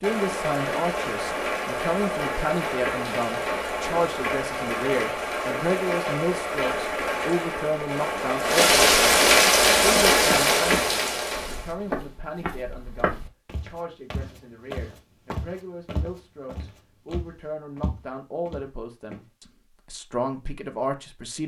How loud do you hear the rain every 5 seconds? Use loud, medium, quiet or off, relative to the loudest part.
medium, loud, loud, off, off.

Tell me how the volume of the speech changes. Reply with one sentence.
The volume of the speech goes down, then up.